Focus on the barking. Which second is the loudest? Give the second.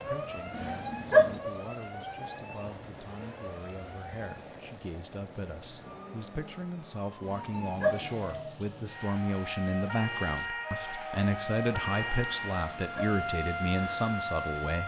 1 s.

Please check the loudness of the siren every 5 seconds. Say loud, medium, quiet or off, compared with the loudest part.
medium, medium, loud.